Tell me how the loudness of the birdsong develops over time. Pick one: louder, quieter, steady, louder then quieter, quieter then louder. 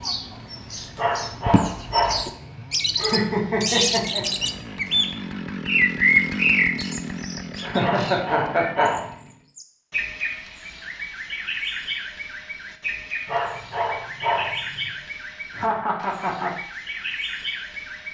louder then quieter.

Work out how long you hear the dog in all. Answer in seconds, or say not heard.
5 s.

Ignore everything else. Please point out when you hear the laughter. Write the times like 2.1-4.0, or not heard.
3.0-4.5, 7.6-8.9, 15.5-16.5.